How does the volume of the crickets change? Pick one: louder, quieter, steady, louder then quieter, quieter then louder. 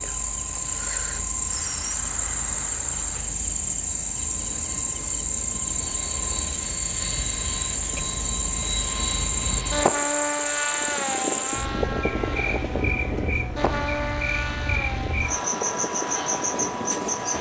steady.